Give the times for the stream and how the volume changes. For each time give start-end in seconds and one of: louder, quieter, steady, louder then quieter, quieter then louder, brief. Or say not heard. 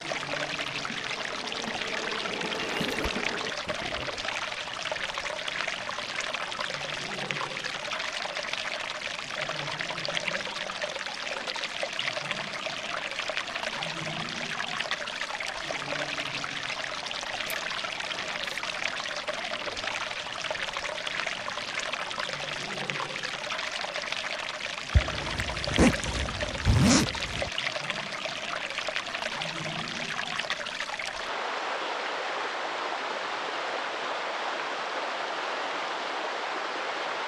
0.0-37.2 steady.